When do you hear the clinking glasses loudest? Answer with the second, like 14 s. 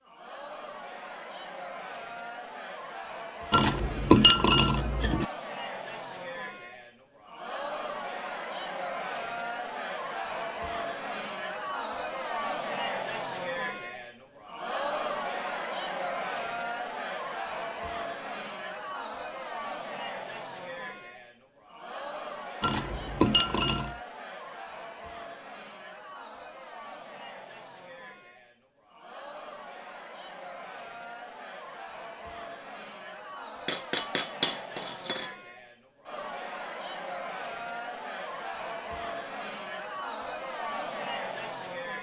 4 s.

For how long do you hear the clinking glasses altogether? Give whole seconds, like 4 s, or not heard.
5 s.